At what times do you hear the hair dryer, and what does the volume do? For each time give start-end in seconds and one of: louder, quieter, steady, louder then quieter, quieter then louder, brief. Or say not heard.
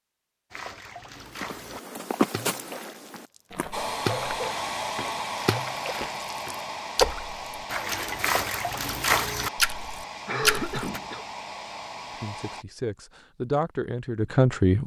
3.7-12.7 quieter.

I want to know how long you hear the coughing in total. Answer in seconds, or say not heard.
2 s.